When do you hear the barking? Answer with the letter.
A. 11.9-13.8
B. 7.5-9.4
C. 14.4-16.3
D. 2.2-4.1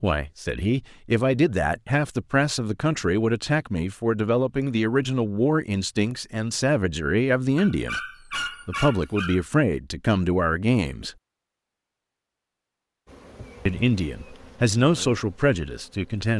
B.